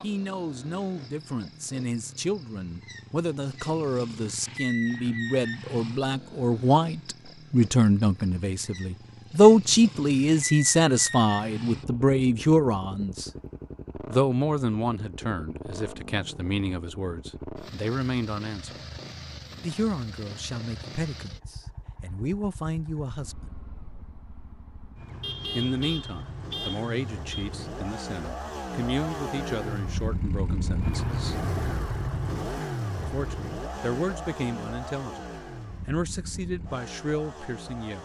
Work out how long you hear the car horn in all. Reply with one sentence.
The car horn can be heard for 2 seconds in total.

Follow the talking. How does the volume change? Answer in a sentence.
The loudness of the talking goes up, then down.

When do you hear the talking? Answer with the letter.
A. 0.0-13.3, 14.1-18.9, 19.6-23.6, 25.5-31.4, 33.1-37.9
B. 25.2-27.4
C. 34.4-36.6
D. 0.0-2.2
A.